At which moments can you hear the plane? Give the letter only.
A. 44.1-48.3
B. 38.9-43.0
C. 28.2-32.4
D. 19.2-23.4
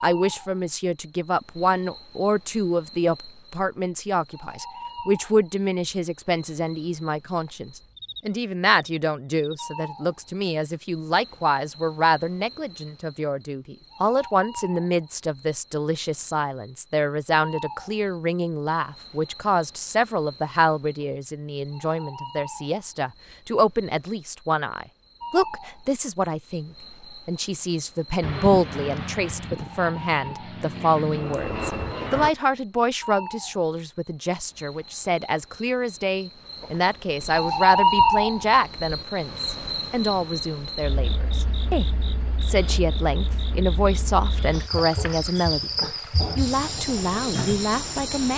C.